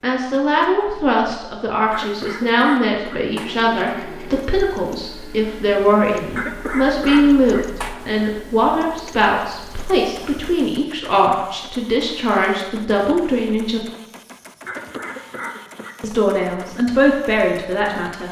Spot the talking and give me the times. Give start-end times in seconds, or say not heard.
0.0-13.8, 16.0-18.2.